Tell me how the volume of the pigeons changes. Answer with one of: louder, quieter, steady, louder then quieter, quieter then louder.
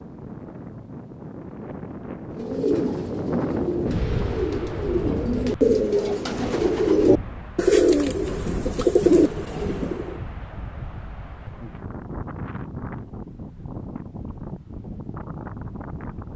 louder.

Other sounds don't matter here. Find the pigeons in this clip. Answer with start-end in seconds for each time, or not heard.
2.4-10.2.